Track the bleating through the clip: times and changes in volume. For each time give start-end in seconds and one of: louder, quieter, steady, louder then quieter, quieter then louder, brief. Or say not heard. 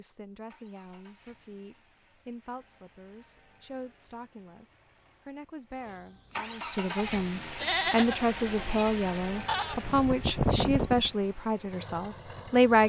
6.8-11.1 quieter then louder.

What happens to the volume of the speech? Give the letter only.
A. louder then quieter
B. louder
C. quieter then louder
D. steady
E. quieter
B.